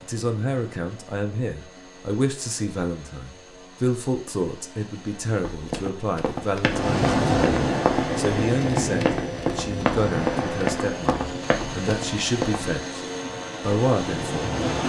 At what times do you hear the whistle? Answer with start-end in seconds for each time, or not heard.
not heard.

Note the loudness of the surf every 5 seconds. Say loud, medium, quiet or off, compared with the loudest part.
off, loud, medium.